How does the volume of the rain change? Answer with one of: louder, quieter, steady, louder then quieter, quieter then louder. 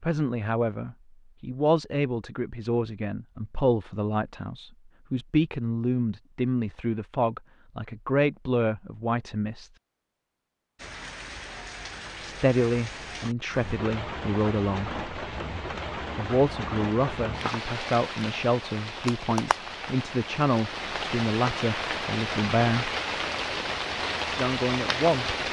louder.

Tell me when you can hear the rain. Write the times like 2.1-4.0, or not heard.
10.8-25.4.